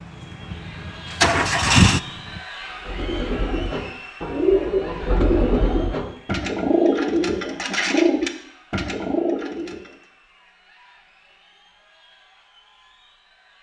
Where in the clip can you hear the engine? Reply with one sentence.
You can hear the engine from 0.0 to 2.4 s.